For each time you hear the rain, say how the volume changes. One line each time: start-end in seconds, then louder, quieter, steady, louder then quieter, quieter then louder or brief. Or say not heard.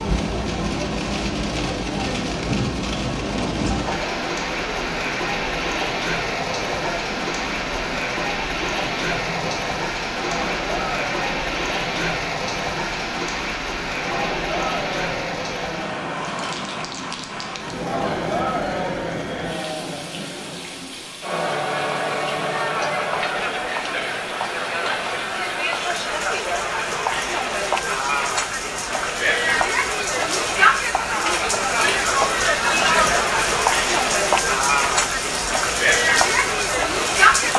0.0-37.5 quieter then louder.